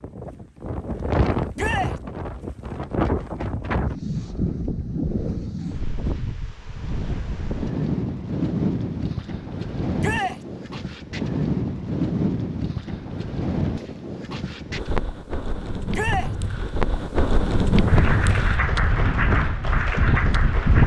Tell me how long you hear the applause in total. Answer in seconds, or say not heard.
3 s.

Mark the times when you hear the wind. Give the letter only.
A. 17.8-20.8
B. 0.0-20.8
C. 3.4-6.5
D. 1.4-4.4
B.